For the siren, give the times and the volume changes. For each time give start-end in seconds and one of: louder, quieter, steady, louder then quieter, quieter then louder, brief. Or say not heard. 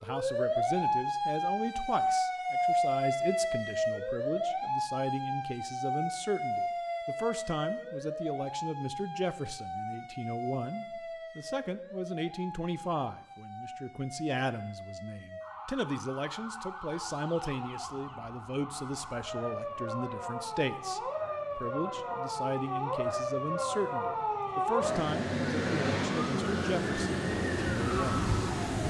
0.0-28.8 quieter then louder.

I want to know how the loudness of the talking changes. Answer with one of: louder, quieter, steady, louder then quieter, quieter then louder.
steady.